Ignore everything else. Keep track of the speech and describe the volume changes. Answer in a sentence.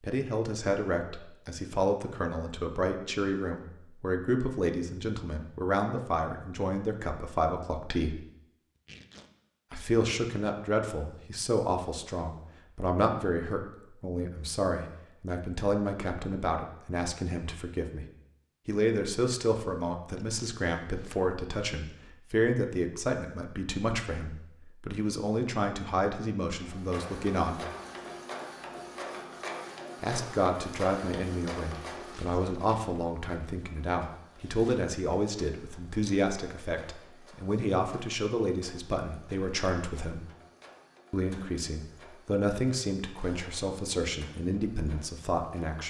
The loudness of the speech stays about the same.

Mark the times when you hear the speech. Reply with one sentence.
You can hear the speech from 0.0 to 8.2 s, from 9.7 to 18.1 s, from 18.6 to 27.6 s, from 30.0 to 40.2 s and from 41.1 to 45.8 s.